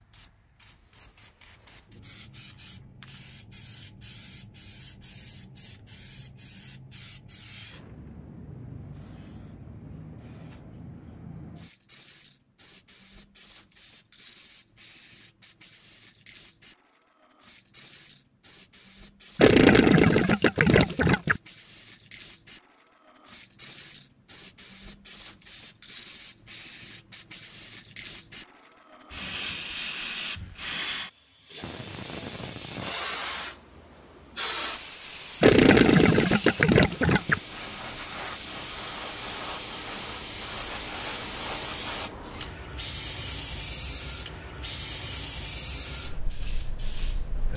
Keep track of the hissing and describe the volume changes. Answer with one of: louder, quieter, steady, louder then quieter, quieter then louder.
louder.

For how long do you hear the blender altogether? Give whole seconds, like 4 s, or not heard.
not heard.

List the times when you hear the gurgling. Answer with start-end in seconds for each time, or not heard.
19.4-21.4, 35.4-37.4.